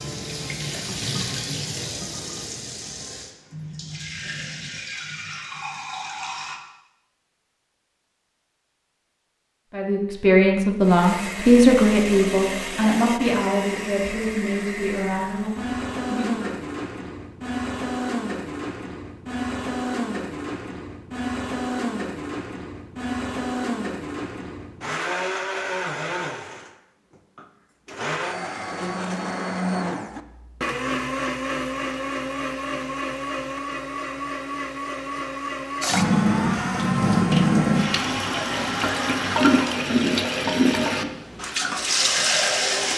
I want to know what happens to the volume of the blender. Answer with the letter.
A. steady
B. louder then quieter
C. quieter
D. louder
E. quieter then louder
A.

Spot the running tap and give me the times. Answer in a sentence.
You can hear the running tap from 0.0 to 6.5 s and from 35.8 to 42.9 s.